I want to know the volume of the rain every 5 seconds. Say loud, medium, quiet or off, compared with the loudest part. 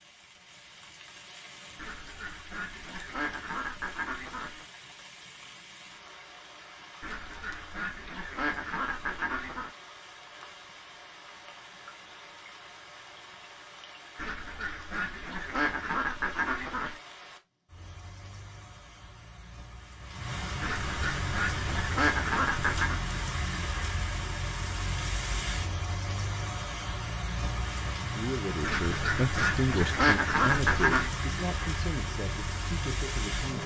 quiet, quiet, quiet, quiet, loud, loud, loud.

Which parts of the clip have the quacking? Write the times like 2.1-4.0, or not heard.
1.8-4.7, 7.0-9.7, 14.2-17.0, 20.6-23.0, 28.6-31.1.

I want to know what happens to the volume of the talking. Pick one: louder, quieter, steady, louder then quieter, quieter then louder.
quieter.